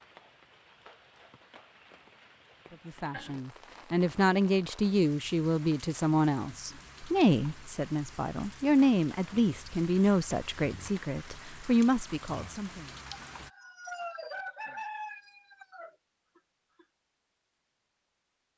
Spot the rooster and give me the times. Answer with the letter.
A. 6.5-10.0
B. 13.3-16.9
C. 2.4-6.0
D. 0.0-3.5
B.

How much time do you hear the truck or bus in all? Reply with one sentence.
You can't hear the truck or bus here.